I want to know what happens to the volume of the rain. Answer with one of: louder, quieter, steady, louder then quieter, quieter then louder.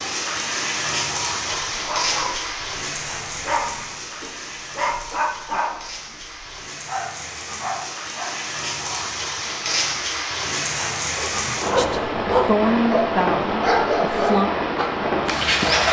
quieter then louder.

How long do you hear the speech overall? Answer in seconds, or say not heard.
3 s.